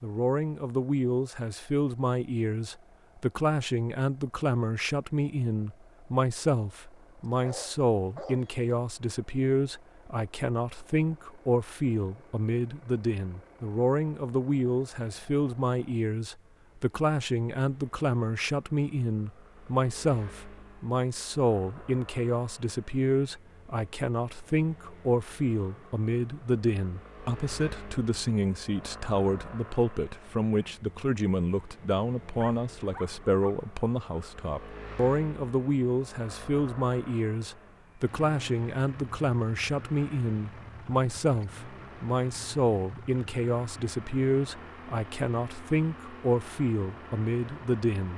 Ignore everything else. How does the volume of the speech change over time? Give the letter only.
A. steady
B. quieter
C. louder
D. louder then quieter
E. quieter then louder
A.